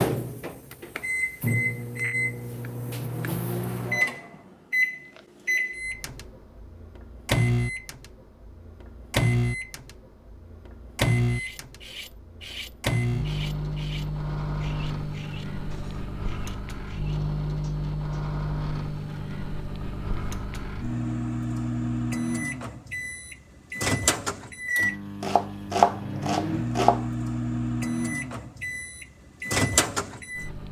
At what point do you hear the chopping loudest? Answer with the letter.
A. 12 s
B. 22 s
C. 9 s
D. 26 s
D.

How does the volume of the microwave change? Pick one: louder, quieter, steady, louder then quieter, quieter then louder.
steady.